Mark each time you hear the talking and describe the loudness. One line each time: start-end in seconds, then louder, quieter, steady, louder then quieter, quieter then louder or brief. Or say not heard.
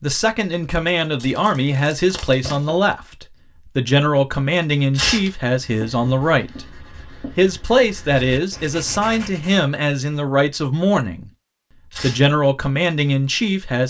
0.0-11.3 steady
12.0-13.8 brief.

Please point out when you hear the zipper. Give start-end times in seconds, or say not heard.
not heard.